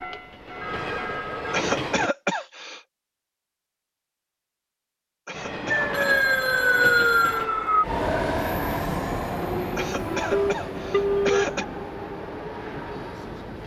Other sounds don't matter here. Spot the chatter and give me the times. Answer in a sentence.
The chatter can't be heard in this clip.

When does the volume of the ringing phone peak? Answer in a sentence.
The volume of the ringing phone peaks at 11 seconds.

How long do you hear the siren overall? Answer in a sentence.
The siren can be heard for 2 seconds in total.